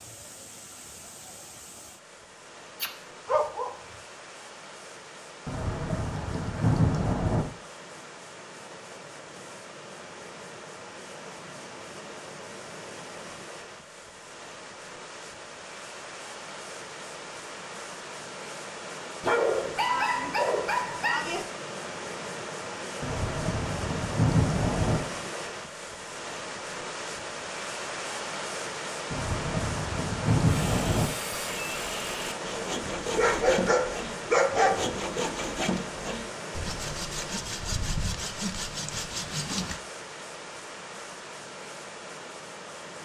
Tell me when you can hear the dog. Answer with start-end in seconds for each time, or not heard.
2.8-3.7, 19.2-21.4, 33.0-35.0.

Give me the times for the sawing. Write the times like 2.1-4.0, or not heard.
30.4-39.8.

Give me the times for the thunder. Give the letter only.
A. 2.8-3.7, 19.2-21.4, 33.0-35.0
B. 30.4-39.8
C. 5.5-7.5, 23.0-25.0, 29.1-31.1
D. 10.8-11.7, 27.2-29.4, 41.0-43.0
C.